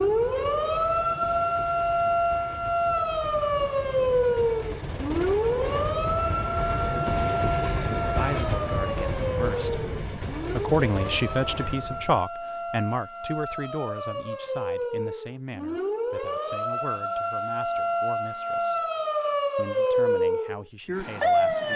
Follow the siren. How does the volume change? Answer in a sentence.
The loudness of the siren goes down, then up.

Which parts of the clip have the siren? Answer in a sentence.
You can hear the siren from 0.0 to 21.7 s.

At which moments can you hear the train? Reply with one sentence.
The train can be heard from 0.0 to 12.2 s.